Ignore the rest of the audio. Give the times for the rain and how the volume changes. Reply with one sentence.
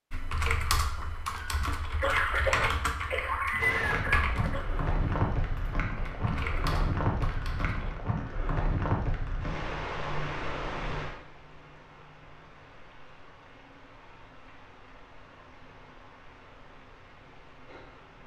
The rain can be heard from 3.5 to 18.2 s, getting quieter.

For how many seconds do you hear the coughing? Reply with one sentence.
The coughing can be heard for 3 seconds in total.